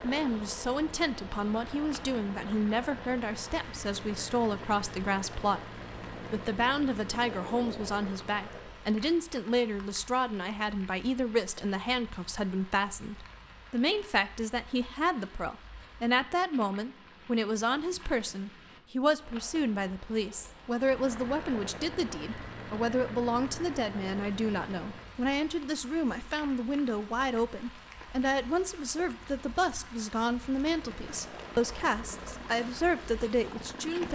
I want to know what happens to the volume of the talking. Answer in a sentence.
The loudness of the talking stays about the same.